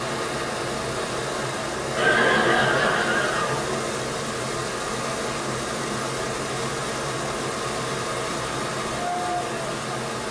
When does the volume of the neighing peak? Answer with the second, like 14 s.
2 s.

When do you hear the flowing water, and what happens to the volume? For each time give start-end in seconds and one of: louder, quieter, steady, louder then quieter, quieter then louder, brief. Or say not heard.
0.0-10.2 steady.